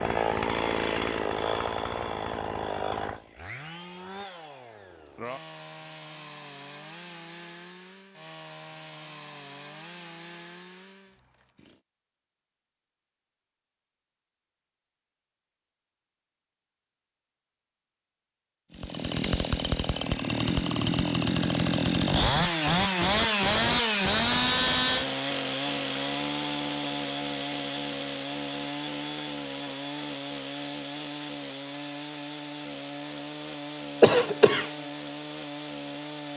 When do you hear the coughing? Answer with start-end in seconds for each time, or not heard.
34.0-34.7.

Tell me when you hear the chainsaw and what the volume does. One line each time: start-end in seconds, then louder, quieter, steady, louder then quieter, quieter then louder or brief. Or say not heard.
0.0-11.8 quieter
18.7-36.3 quieter.